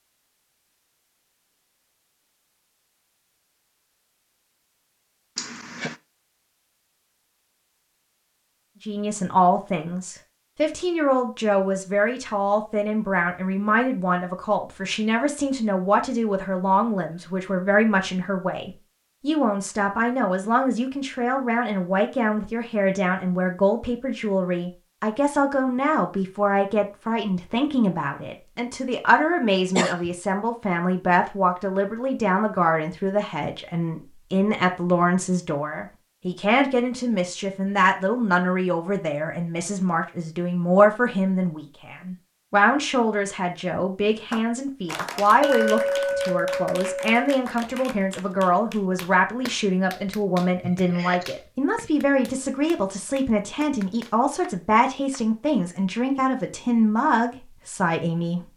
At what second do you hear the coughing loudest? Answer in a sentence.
The loudest moment of the coughing is at 30 seconds.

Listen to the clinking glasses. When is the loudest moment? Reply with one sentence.
The volume of the clinking glasses peaks at 46 seconds.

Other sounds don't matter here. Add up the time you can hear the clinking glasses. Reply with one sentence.
The clinking glasses can be heard for 2 seconds in total.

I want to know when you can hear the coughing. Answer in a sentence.
The coughing can be heard from 5.3 to 6.0 s, from 29.6 to 30.1 s and from 50.6 to 51.3 s.